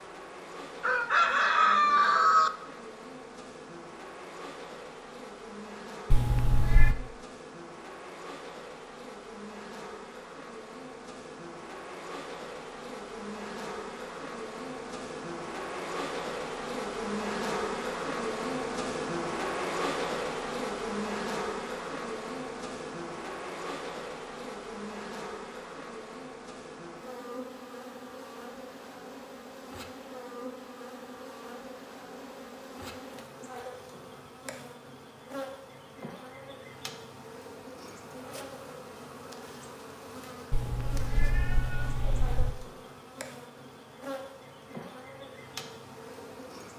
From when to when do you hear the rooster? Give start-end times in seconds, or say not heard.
0.8-2.5.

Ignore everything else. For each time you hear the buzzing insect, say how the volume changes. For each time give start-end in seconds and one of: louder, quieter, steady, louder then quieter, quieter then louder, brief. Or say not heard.
0.0-46.7 louder then quieter.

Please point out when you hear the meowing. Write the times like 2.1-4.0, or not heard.
6.1-7.0, 40.5-42.5.